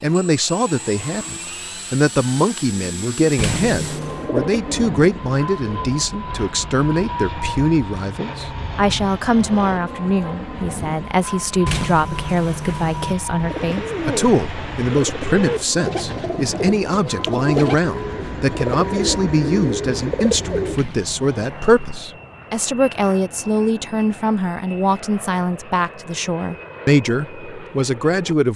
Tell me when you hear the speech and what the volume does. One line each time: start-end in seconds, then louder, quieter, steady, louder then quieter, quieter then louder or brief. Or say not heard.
0.0-28.5 steady.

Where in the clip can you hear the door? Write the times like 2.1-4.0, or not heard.
3.4-4.3, 11.7-13.2, 20.7-22.0.